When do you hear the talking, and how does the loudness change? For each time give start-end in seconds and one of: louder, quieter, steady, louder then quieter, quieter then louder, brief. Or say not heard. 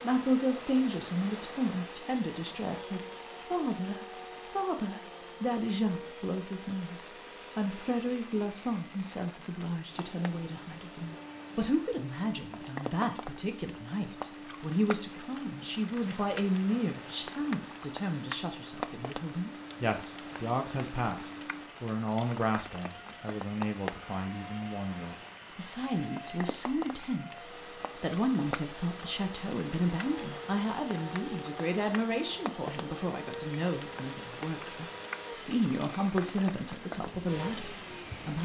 0.0-38.4 steady.